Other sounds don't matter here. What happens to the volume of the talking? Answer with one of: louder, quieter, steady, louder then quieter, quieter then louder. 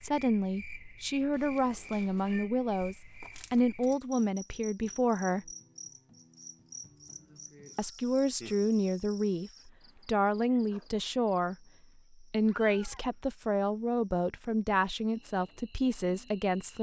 steady.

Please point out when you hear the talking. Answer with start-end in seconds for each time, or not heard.
0.0-5.5, 7.8-16.7.